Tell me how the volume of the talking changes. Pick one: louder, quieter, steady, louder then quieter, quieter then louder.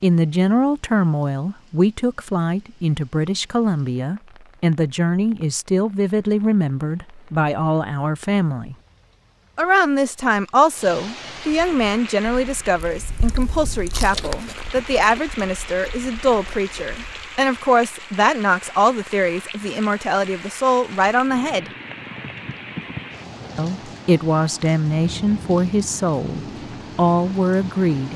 steady.